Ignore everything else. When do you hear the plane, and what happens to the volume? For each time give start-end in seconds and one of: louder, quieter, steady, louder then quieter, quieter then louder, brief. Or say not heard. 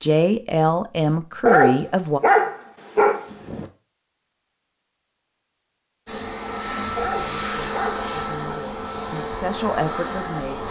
6.0-10.6 steady.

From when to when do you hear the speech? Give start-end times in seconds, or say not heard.
0.0-2.2, 7.0-10.6.